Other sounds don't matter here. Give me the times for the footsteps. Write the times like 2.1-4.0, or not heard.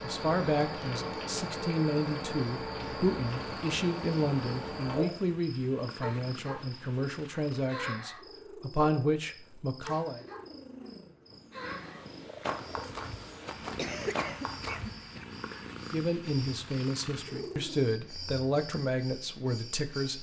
12.4-14.9.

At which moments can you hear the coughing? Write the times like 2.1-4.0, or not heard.
13.8-15.2.